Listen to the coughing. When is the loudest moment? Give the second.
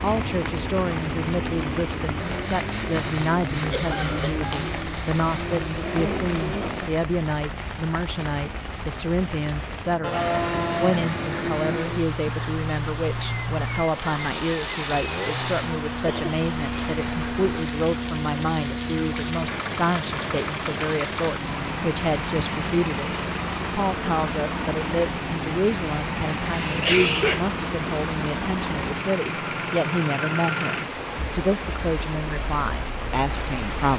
27 s.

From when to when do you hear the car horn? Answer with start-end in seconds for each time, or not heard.
10.0-11.0.